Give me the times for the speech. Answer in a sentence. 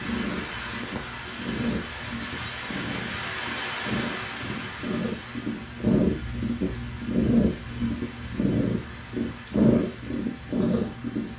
You can't hear the speech here.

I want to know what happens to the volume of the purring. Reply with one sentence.
The volume of the purring goes up.